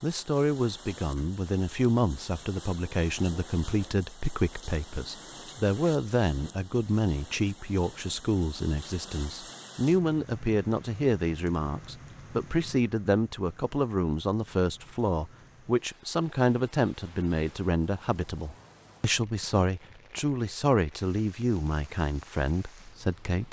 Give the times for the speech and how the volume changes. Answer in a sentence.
You can hear the speech from 0.0 to 23.4 s, at a steady volume.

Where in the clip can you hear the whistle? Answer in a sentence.
You can't hear the whistle here.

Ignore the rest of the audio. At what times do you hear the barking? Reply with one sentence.
You can't hear the barking here.